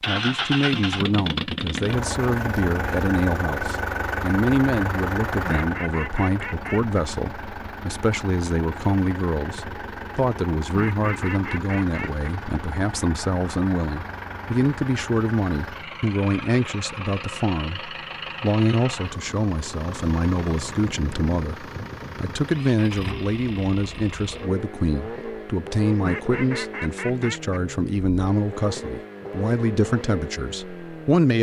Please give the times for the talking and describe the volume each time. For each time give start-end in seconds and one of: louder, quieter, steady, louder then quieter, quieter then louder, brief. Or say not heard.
0.1-31.3 steady.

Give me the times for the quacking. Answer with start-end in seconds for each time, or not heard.
5.4-7.0, 10.7-12.3, 26.0-27.6.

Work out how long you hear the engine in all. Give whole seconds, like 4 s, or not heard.
31 s.